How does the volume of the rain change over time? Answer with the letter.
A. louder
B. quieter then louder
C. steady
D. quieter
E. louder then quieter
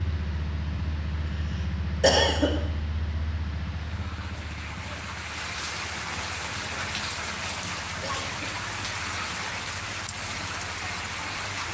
A.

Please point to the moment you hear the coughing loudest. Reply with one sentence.
The loudest moment of the coughing is at 2 seconds.